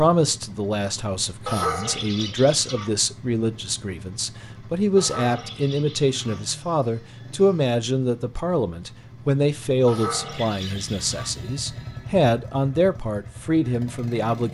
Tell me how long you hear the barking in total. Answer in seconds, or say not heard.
4 s.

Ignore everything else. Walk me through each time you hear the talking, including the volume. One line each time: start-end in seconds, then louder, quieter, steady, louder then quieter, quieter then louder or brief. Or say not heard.
0.0-14.4 steady.